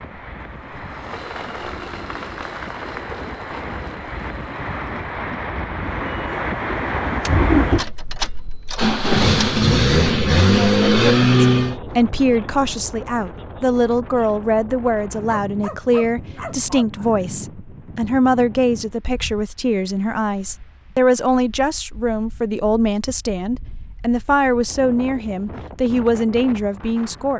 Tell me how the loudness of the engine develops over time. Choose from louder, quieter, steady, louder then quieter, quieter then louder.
quieter then louder.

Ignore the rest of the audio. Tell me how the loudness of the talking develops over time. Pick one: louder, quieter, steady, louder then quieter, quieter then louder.
steady.